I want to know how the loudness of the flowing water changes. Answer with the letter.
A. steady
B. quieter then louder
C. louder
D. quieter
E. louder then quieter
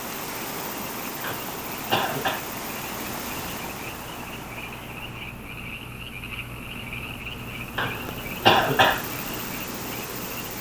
B.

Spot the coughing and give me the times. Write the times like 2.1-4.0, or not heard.
1.2-2.5, 7.8-9.1.